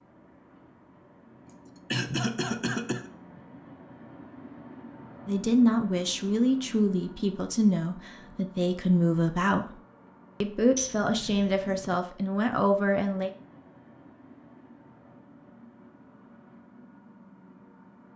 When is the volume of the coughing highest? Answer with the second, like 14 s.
2 s.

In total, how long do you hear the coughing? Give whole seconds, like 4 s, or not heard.
3 s.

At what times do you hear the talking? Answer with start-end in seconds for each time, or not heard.
5.2-9.8, 10.4-13.3.